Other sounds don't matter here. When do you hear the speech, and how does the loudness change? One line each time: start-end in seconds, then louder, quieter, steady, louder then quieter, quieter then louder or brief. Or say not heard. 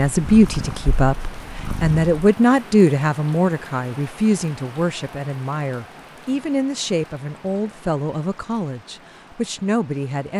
0.0-10.3 quieter.